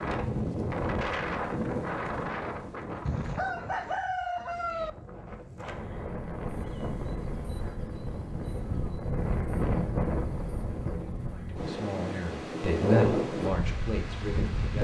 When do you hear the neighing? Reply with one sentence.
The neighing can't be heard in this clip.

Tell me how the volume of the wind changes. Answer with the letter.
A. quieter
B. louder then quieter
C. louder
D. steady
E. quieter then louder
E.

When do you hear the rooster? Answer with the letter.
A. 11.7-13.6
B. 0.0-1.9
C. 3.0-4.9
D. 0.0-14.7
C.